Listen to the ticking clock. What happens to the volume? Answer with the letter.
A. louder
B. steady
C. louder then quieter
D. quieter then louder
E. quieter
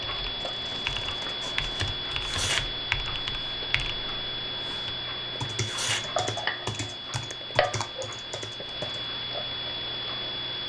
B.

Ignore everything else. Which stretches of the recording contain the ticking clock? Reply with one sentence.
The ticking clock can be heard from 0.0 to 10.6 s.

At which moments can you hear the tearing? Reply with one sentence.
The tearing can be heard from 2.0 to 2.6 s and from 5.5 to 6.0 s.